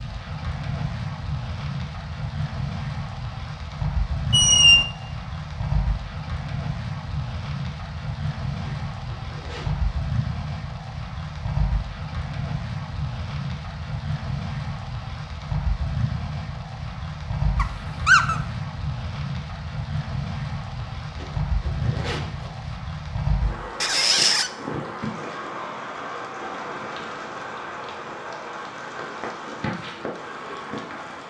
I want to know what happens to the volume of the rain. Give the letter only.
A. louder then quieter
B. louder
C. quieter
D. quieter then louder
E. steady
E.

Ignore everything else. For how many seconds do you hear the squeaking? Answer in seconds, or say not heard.
2 s.